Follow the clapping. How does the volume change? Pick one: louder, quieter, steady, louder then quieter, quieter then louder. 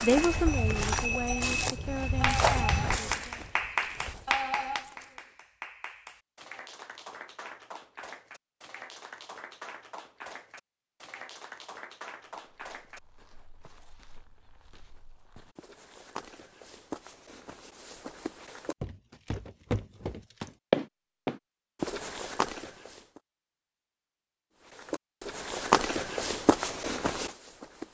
quieter.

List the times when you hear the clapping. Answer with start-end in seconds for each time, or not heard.
2.2-13.0.